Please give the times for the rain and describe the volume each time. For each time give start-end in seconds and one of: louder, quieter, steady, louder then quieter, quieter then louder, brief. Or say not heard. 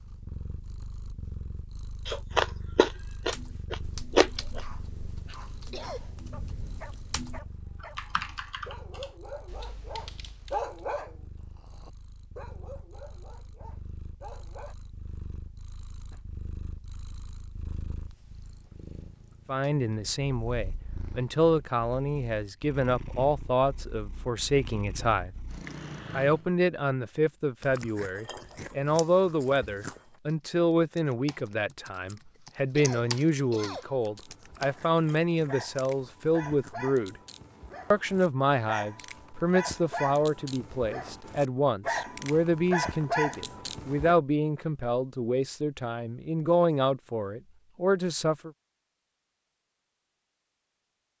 not heard.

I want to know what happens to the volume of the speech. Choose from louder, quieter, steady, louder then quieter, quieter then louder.
steady.